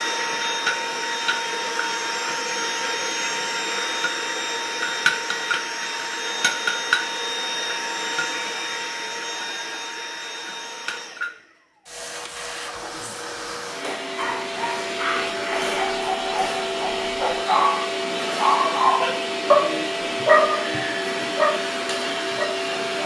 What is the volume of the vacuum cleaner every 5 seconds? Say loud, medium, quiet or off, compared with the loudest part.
loud, loud, medium, loud, loud.